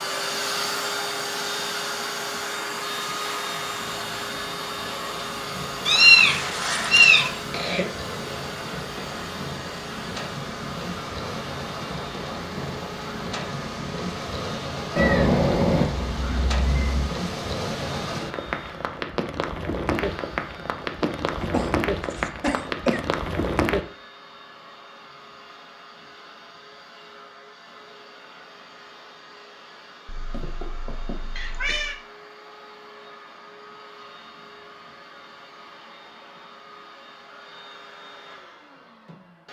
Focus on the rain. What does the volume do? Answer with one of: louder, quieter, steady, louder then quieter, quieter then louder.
louder.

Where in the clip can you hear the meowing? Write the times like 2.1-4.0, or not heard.
5.8-7.3, 14.9-17.1, 30.1-31.9.